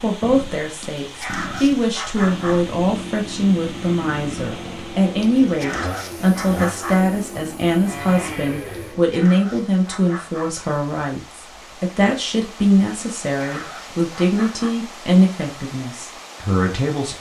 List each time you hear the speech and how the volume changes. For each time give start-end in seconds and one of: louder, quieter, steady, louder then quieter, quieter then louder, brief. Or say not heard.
0.0-17.1 steady.